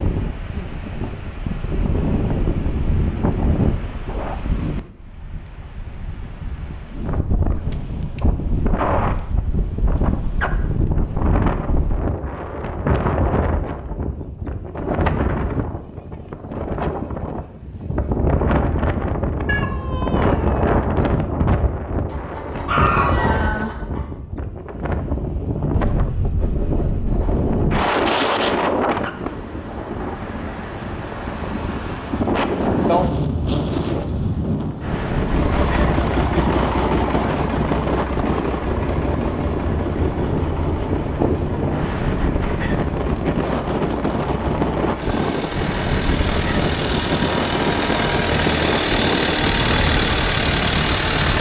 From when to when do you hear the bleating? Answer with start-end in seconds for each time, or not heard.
not heard.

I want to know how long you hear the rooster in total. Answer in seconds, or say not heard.
2 s.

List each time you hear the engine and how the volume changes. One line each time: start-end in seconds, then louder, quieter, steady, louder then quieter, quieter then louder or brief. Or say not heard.
35.1-51.3 quieter then louder.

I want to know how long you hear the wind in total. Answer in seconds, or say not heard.
51 s.